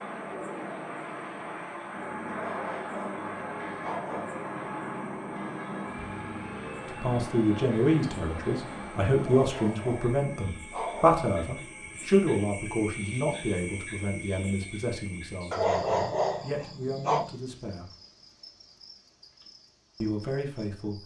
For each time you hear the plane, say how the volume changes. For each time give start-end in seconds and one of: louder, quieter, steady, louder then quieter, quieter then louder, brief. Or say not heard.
0.0-9.2 steady.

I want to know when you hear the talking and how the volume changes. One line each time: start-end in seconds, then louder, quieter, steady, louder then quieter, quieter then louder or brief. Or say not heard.
6.8-17.9 quieter
20.0-21.0 brief.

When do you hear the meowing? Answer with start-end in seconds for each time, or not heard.
not heard.